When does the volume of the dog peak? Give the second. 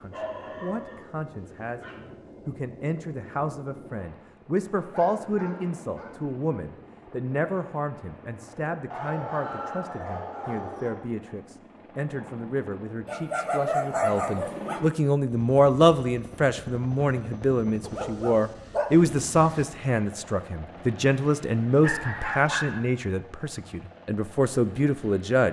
14 s.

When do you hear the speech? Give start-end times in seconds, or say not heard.
0.0-25.4.